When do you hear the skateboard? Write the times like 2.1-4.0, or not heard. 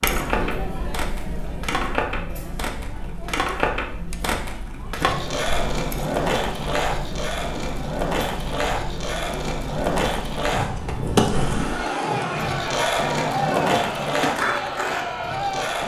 0.0-15.8.